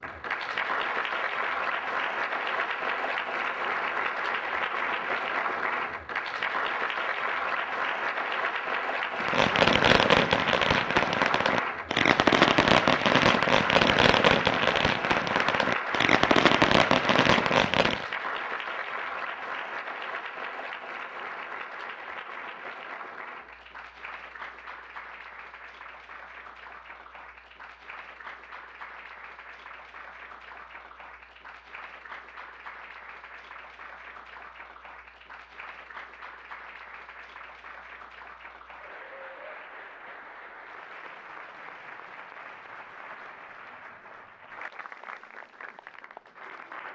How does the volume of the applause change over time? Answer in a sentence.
The volume of the applause goes down.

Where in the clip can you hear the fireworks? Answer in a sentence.
The fireworks can be heard from 9.2 to 18.1 s.